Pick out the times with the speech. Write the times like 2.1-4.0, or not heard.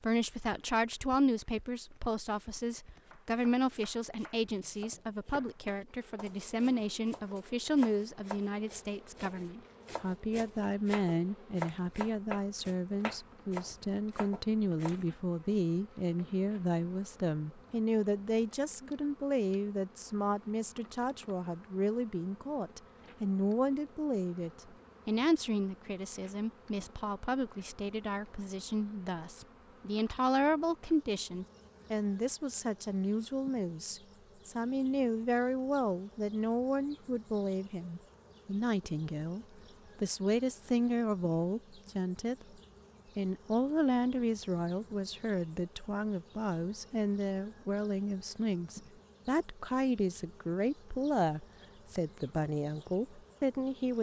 0.0-42.5, 43.1-53.9.